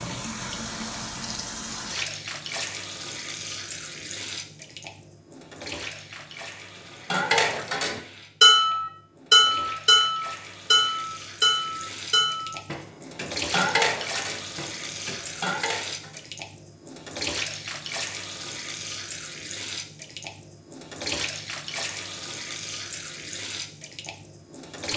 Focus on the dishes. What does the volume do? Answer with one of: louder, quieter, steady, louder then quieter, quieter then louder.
quieter.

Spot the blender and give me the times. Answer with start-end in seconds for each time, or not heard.
not heard.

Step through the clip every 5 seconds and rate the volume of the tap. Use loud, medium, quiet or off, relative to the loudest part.
loud, medium, loud, loud, loud.